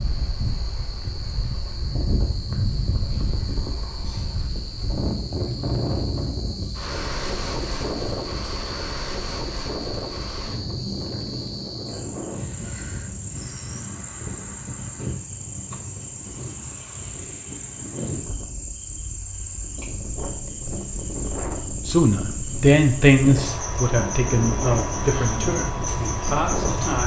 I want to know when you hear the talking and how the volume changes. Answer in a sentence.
You can hear the talking from 21.9 to 27.0 s, getting quieter.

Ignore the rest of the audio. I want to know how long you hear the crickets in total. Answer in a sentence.
The crickets can be heard for 27 seconds in total.